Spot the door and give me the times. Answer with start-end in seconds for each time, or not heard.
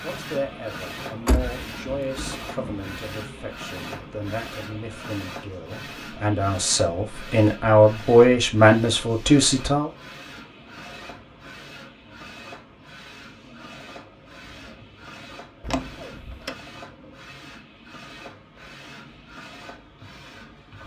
1.2-2.9, 15.6-16.6.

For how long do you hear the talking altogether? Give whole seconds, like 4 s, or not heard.
10 s.